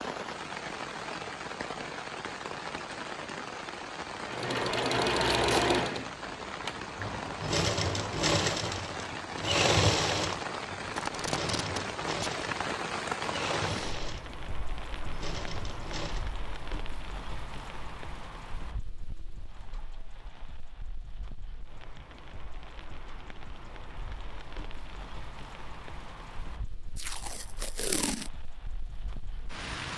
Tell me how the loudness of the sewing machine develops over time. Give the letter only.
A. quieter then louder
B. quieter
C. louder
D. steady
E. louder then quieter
B.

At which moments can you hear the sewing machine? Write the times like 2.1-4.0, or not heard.
4.2-16.3.